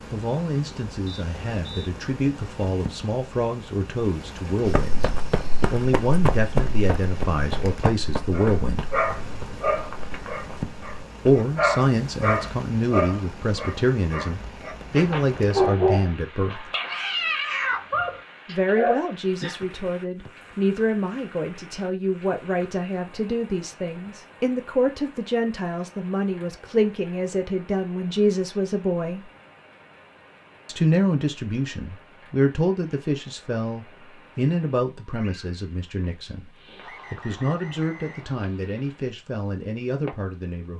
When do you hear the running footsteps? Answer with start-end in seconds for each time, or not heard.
4.7-11.4.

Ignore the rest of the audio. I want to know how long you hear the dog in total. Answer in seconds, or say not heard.
11 s.